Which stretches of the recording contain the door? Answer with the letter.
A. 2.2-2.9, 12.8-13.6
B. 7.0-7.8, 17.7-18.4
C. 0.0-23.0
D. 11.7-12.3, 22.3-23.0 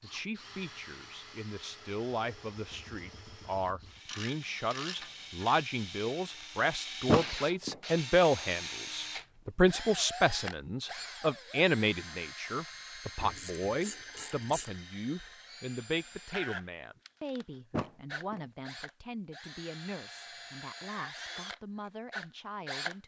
B.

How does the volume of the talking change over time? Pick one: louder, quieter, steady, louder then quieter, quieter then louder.
louder then quieter.